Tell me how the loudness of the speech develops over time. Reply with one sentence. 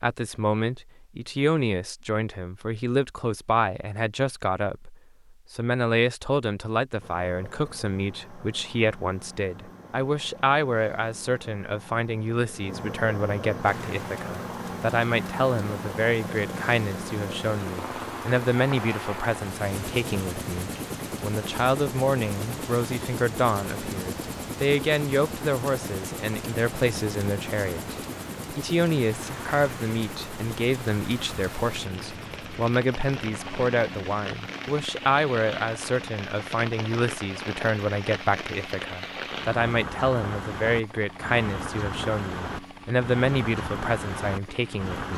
The volume of the speech stays about the same.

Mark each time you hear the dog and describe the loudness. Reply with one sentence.
You can't hear the dog here.